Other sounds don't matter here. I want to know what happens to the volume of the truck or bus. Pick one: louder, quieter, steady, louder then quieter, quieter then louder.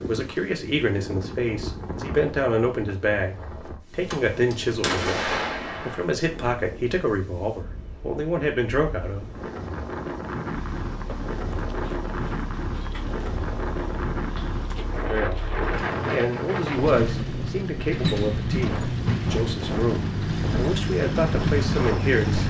louder.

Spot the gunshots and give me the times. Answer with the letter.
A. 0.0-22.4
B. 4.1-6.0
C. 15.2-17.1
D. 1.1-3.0
B.